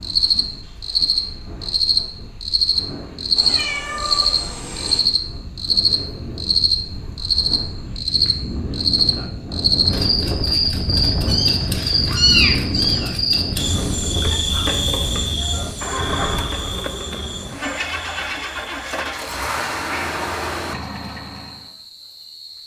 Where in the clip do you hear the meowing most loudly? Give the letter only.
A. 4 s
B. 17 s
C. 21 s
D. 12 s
D.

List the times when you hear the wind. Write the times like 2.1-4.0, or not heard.
0.0-16.4.